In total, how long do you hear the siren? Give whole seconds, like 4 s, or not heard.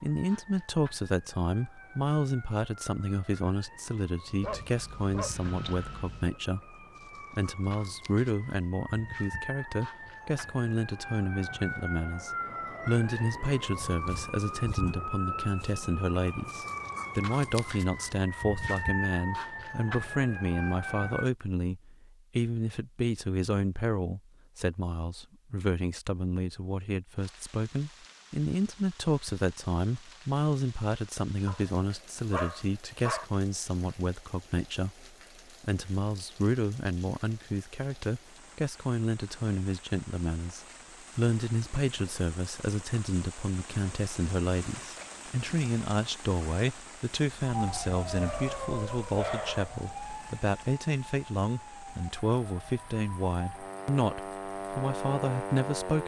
30 s.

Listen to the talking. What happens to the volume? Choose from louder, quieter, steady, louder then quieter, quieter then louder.
steady.